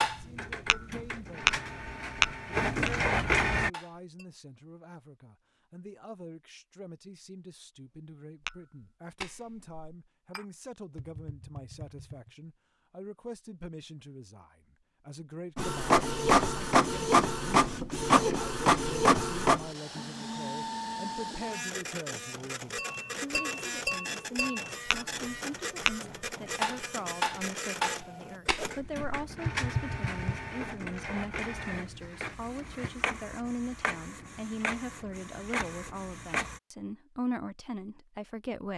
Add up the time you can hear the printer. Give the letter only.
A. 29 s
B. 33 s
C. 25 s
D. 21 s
C.